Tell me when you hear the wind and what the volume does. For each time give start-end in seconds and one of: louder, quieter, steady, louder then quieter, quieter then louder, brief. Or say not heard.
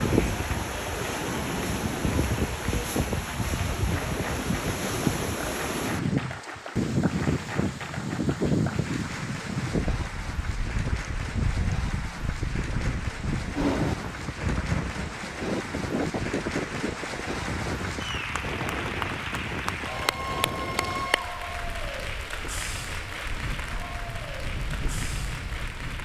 0.0-26.0 quieter.